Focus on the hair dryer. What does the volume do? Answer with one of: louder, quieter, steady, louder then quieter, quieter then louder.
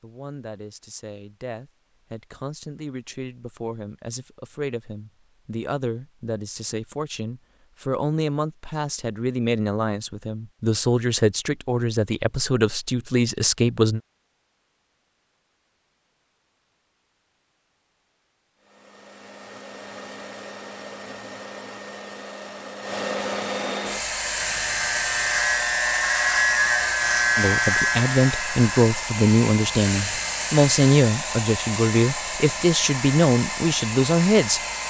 louder.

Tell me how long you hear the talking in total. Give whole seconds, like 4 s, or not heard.
21 s.